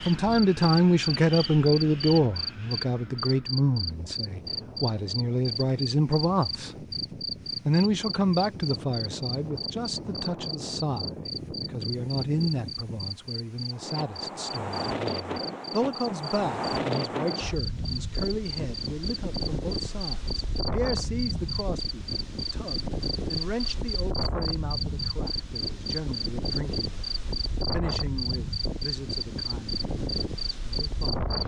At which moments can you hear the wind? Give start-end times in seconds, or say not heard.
0.0-31.4.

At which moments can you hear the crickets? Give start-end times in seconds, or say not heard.
0.0-31.4.